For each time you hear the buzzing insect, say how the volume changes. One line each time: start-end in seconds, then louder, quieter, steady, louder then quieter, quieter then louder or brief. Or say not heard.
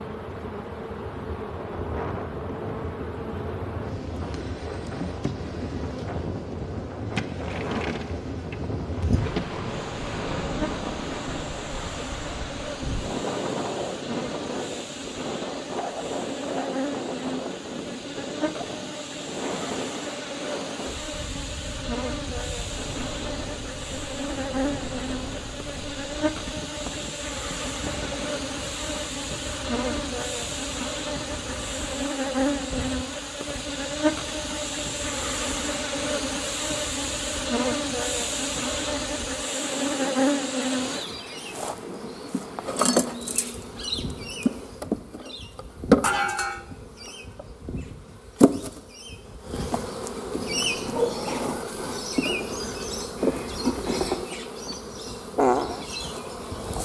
0.0-56.7 louder.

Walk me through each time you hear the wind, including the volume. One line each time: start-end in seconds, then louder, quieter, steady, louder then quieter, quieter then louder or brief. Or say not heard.
0.0-56.7 quieter.